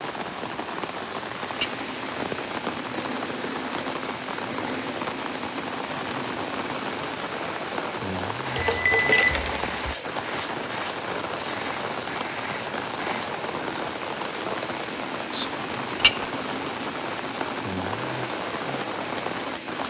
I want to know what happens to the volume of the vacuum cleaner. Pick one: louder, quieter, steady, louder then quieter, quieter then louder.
steady.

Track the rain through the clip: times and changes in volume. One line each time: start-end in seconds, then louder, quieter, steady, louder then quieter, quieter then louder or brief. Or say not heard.
0.0-19.8 steady.